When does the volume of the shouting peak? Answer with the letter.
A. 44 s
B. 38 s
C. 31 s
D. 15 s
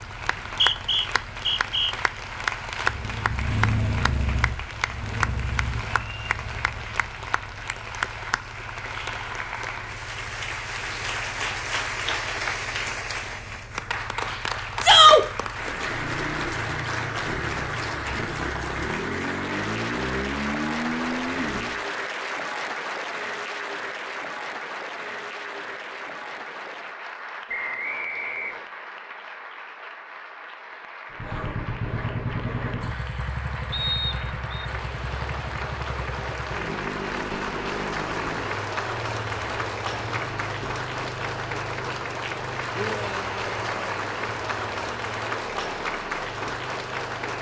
D.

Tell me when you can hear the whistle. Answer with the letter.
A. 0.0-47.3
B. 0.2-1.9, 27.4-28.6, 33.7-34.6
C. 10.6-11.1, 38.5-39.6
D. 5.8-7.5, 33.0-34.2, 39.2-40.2
B.